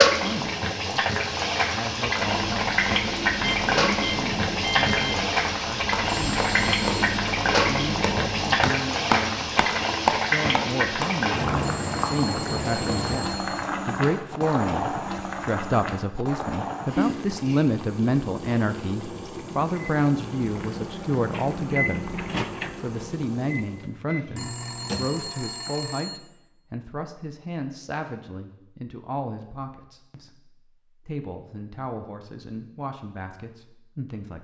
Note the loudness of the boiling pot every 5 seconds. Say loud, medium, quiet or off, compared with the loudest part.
loud, loud, loud, medium, quiet, off, off.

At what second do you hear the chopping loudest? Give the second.
10 s.